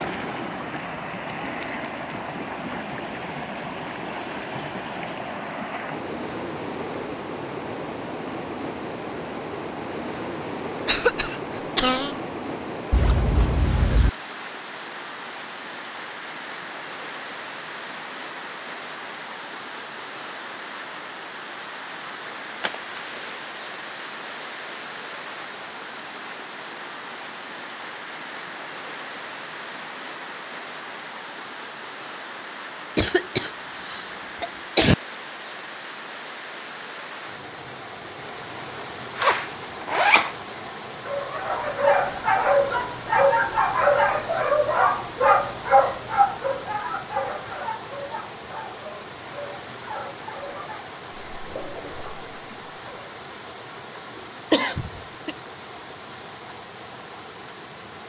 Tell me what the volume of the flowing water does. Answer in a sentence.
The volume of the flowing water goes down.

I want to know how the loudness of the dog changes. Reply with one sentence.
The loudness of the dog goes down.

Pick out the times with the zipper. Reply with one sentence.
The zipper can be heard from 12.9 to 14.1 s, from 22.6 to 23.4 s and from 39.1 to 40.4 s.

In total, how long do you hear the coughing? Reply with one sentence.
The coughing can be heard for 4 seconds in total.